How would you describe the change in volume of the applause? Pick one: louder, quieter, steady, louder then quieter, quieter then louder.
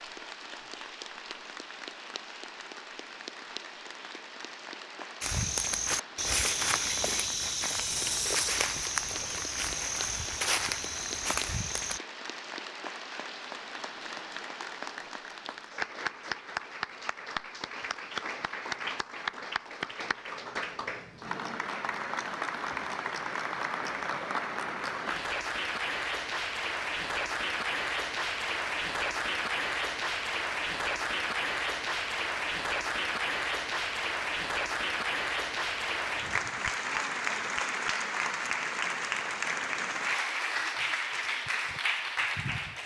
louder.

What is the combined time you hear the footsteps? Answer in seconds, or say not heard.
7 s.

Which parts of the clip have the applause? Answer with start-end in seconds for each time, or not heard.
0.0-42.8.